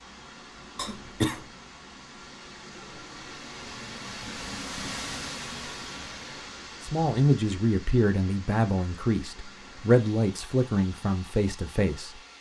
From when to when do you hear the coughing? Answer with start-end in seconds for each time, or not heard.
0.8-1.4.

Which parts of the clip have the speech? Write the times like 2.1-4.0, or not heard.
6.8-12.1.